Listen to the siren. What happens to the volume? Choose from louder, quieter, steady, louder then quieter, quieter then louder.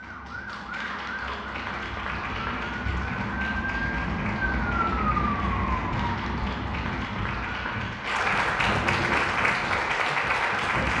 louder then quieter.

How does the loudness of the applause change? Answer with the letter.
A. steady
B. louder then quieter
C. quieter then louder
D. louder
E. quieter
D.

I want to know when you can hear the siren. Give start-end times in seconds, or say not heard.
0.0-10.9.